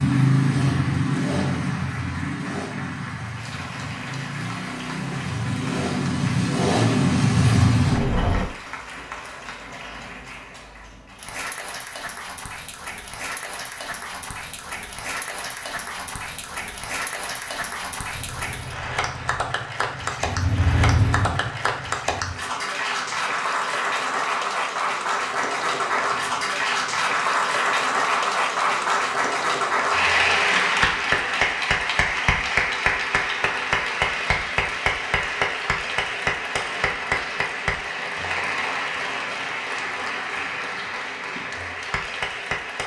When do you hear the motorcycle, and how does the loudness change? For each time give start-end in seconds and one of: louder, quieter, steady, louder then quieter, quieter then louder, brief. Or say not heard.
0.0-8.4 quieter then louder
18.1-22.4 louder then quieter.